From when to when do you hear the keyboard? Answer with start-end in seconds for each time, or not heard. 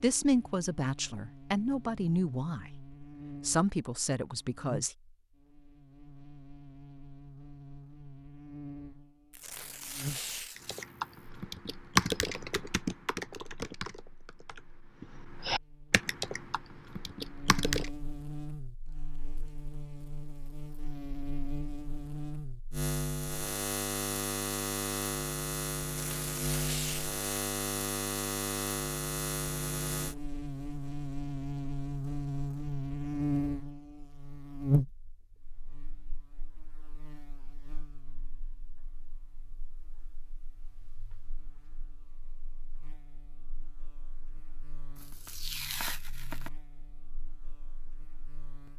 10.6-17.9.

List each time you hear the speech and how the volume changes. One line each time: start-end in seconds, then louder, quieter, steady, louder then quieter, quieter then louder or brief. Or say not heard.
0.0-4.9 louder then quieter.